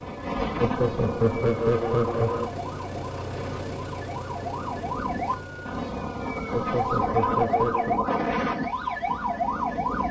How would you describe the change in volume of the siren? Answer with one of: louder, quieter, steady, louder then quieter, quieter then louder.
quieter then louder.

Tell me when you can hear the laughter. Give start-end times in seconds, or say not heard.
0.6-2.5, 6.5-8.0.